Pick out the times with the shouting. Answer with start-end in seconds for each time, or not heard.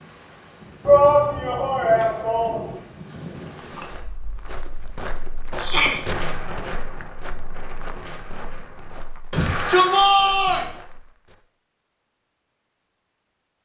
0.8-2.8, 5.5-6.0, 9.3-10.7.